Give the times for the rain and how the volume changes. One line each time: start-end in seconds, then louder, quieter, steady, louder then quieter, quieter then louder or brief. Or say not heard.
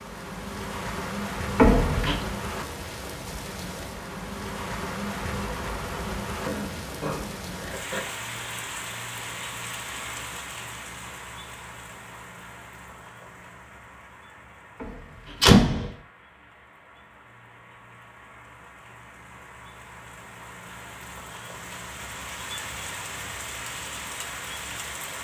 0.0-25.2 quieter then louder.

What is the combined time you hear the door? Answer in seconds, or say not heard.
2 s.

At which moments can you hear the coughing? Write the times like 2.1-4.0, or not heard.
6.4-8.1.